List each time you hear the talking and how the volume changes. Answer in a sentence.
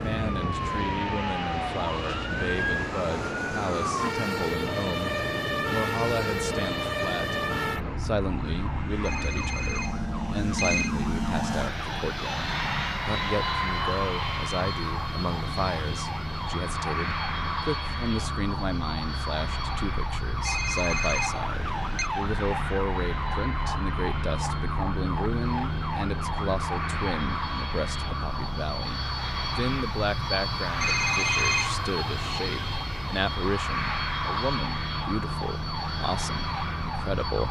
You can hear the talking from 0.0 to 37.4 s, at a steady volume.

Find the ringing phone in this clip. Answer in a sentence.
The ringing phone can be heard from 9.1 to 10.9 s, from 20.4 to 22.1 s and from 30.8 to 31.8 s.